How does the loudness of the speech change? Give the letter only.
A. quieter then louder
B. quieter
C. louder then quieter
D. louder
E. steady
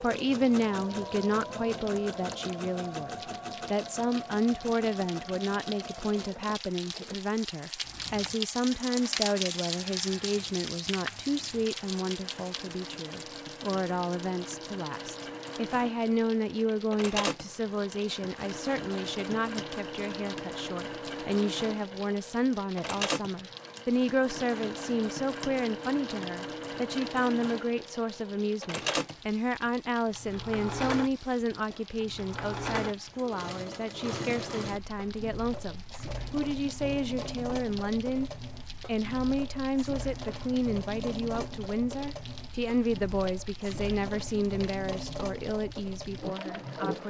E.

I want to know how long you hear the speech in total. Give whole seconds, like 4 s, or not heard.
47 s.